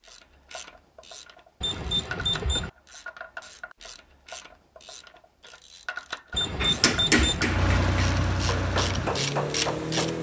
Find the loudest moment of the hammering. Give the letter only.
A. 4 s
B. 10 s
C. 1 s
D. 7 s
D.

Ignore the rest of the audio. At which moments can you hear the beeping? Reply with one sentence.
You can hear the beeping from 1.6 to 2.7 s and from 6.3 to 7.5 s.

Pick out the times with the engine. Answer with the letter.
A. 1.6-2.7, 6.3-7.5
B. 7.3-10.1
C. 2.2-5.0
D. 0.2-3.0
B.